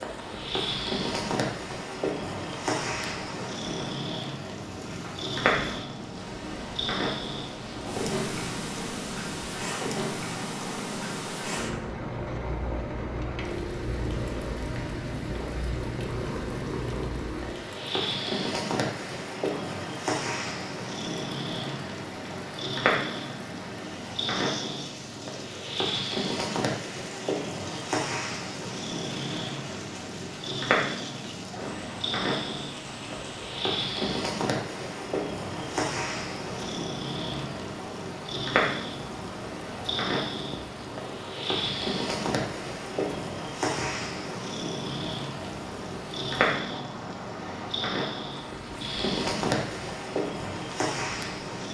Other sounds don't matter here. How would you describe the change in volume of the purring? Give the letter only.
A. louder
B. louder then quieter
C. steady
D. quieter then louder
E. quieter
C.